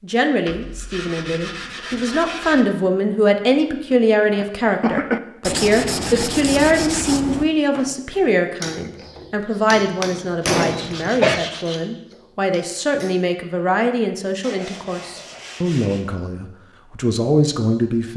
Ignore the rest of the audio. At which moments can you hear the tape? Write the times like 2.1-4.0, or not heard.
not heard.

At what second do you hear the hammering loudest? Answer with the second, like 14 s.
11 s.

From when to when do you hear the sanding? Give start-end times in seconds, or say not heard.
0.5-2.6, 5.4-7.5, 10.2-11.8, 14.4-16.1.